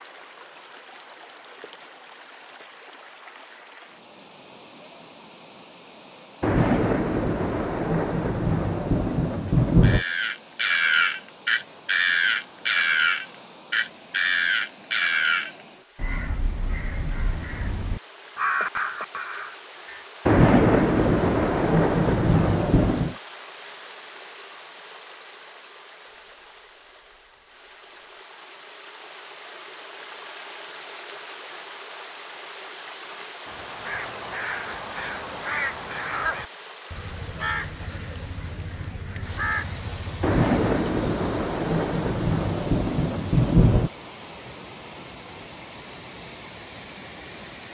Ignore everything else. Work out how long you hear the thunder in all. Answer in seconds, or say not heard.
10 s.